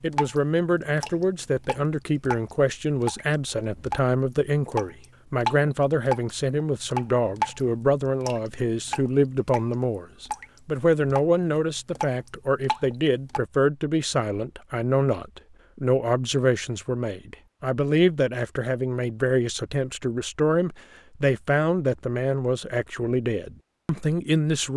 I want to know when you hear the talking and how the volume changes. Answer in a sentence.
The talking can be heard from 0.0 to 24.7 s, at a steady volume.